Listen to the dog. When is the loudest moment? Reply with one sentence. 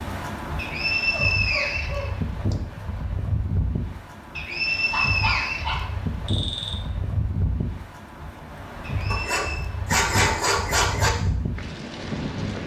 The loudest moment of the dog is at 10 seconds.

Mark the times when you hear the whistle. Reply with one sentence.
The whistle can be heard from 0.6 to 2.5 s, from 4.3 to 5.8 s and from 8.8 to 9.7 s.